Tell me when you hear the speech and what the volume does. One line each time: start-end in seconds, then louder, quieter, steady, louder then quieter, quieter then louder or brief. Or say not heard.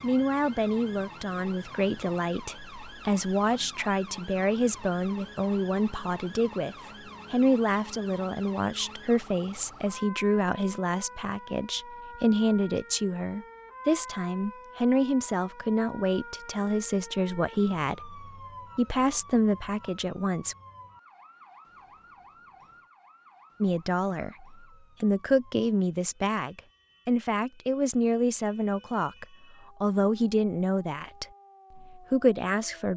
0.0-20.6 steady
23.6-32.9 steady.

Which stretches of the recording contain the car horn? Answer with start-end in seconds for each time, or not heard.
not heard.